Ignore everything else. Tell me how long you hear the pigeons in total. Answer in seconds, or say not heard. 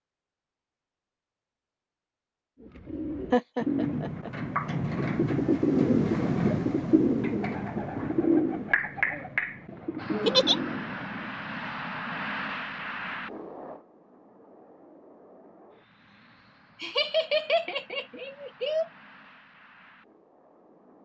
9 s.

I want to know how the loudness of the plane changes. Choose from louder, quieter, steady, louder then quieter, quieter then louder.
quieter.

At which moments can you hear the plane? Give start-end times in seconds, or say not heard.
9.9-21.0.